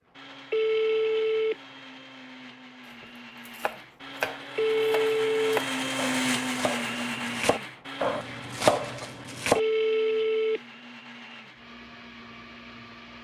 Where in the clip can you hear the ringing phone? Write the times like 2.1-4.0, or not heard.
0.5-1.6, 4.5-5.6, 9.6-10.6.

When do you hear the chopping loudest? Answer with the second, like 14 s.
9 s.